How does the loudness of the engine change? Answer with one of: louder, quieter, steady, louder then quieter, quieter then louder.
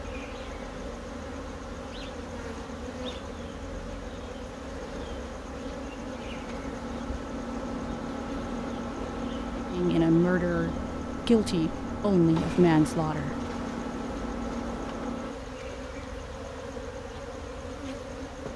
louder.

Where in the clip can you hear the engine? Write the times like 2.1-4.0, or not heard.
0.0-15.3.